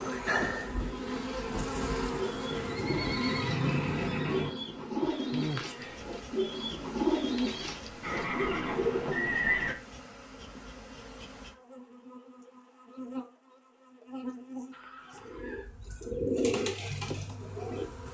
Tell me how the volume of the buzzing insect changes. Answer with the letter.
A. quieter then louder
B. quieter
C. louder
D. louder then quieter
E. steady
B.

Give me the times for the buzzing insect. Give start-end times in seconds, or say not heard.
0.0-18.0.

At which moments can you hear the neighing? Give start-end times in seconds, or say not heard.
2.5-4.5, 8.0-9.8, 14.7-15.7.